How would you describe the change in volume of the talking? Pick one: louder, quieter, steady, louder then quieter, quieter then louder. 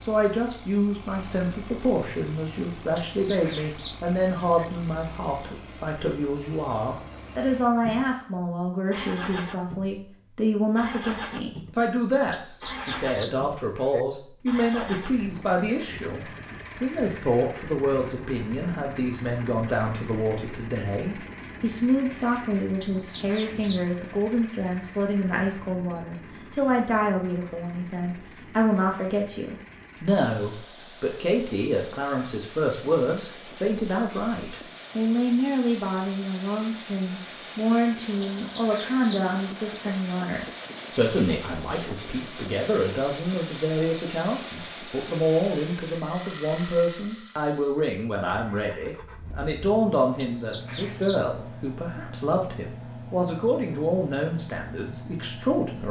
steady.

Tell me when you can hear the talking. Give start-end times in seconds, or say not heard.
0.0-55.8.